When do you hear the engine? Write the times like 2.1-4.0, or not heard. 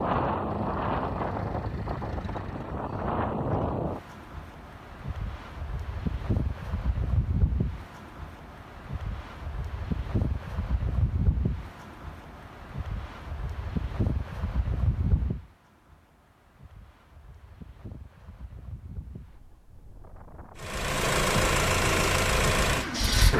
0.0-2.8, 20.6-23.3.